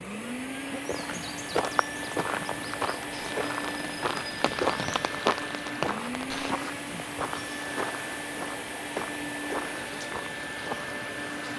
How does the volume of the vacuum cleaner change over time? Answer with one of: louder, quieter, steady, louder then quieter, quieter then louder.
steady.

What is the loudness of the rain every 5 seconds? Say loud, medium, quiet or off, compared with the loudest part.
loud, loud, medium.